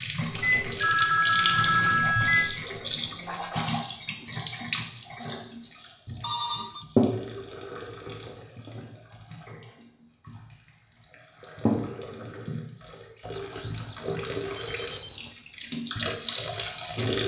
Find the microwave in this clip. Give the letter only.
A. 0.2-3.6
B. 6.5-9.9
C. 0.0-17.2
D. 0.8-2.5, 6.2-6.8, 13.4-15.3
A.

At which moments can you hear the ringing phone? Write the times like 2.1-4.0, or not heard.
0.8-2.5, 6.2-6.8, 13.4-15.3.